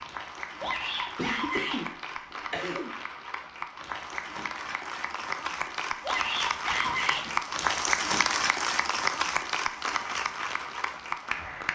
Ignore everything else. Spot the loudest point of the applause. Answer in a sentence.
The loudest moment of the applause is at 8 seconds.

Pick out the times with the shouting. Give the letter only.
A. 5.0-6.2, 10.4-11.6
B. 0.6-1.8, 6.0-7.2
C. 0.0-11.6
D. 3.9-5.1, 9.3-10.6
B.